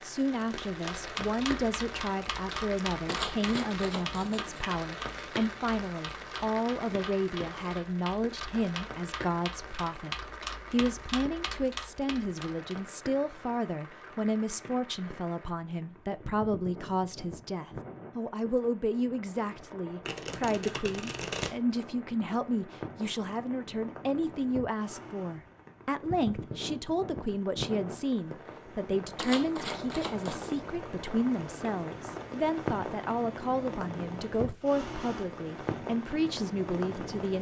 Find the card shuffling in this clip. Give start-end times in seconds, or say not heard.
3.0-4.7, 20.1-21.6, 29.1-30.5.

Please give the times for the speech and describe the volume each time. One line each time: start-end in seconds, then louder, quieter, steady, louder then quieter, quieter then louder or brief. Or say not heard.
0.0-37.3 steady.